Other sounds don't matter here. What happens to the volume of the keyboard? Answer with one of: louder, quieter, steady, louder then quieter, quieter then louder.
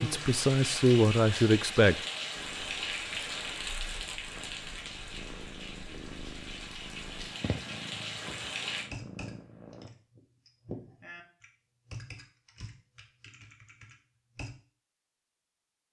louder then quieter.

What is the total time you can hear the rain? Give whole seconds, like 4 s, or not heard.
9 s.